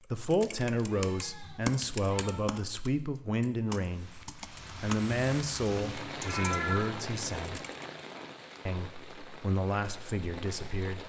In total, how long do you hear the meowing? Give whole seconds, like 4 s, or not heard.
4 s.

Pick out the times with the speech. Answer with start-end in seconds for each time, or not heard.
0.1-7.6, 8.7-11.0.